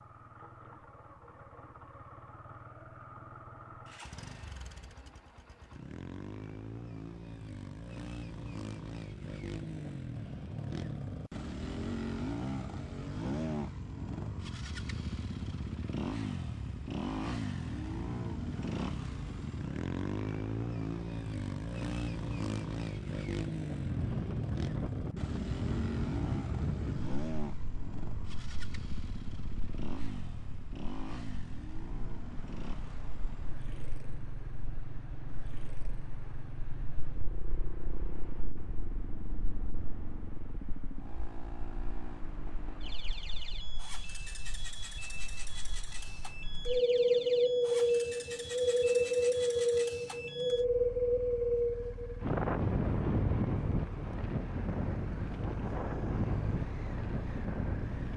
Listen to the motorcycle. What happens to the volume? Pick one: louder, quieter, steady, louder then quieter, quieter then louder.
louder then quieter.